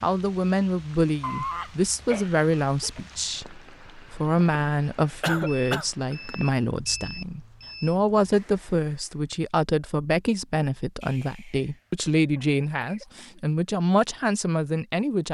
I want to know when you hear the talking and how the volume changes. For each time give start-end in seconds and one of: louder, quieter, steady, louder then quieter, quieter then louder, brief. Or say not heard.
0.0-15.2 steady.